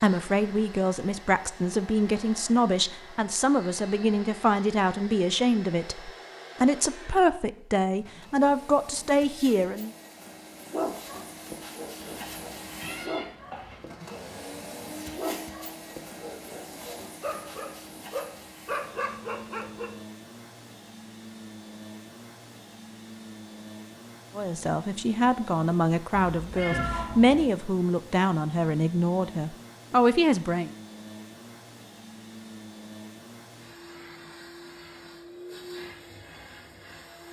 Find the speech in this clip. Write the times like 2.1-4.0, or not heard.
0.0-9.9, 24.4-30.7.